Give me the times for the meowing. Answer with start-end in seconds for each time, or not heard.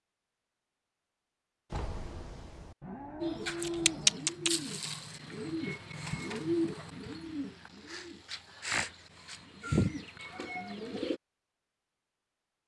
1.7-2.8, 9.6-10.8.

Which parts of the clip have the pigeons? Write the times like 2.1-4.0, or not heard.
3.2-11.2.